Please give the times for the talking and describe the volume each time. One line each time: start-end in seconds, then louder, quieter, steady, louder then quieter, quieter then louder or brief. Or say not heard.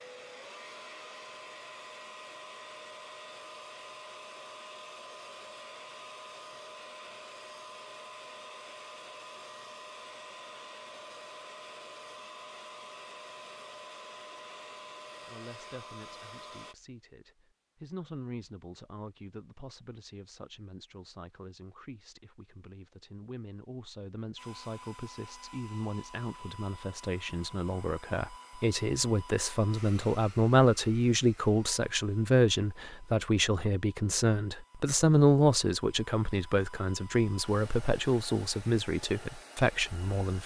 15.2-40.4 louder.